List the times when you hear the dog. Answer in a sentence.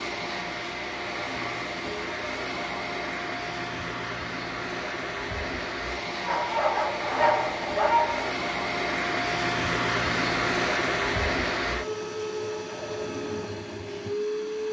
You can hear the dog from 6.2 to 8.3 s.